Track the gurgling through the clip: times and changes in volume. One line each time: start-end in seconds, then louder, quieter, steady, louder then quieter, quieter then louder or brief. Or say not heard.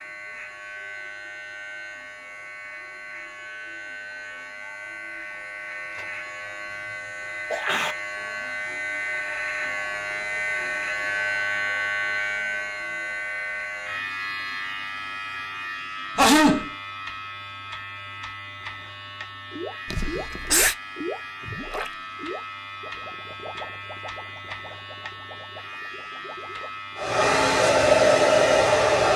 19.5-27.0 quieter.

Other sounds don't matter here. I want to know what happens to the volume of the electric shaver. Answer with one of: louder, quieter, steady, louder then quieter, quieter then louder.
louder then quieter.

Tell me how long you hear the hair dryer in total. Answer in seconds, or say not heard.
2 s.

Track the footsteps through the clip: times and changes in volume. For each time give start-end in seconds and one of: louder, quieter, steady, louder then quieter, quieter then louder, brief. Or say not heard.
not heard.